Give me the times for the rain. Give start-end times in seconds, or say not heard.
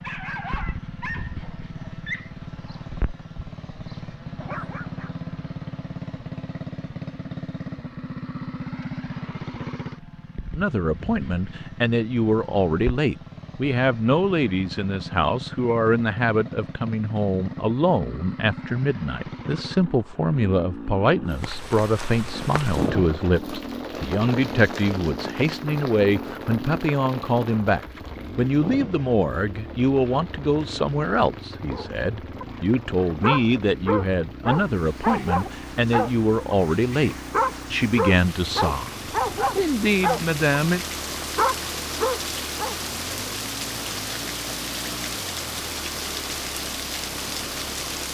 21.3-48.0.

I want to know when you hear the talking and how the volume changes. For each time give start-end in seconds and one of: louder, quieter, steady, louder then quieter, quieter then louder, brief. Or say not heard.
10.6-40.8 steady.